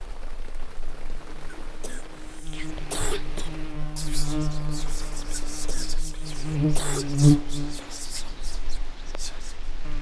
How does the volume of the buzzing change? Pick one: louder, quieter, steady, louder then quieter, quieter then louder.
louder then quieter.